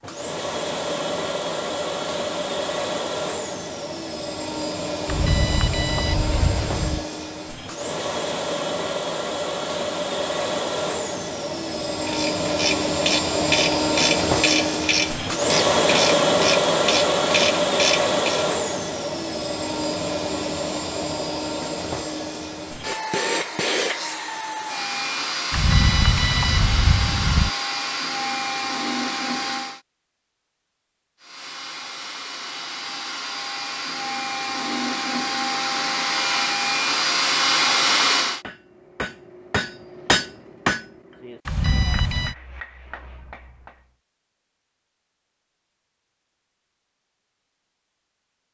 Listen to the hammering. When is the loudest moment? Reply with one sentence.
The loudest moment of the hammering is at 40 seconds.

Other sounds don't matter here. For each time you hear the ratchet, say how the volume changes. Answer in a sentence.
The ratchet can be heard from 12.1 to 18.4 s, at a steady volume.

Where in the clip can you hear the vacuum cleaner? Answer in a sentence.
The vacuum cleaner can be heard from 0.0 to 29.8 s and from 31.2 to 38.4 s.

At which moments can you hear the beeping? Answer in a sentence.
You can hear the beeping from 5.0 to 7.0 s, from 25.5 to 27.5 s and from 41.5 to 42.4 s.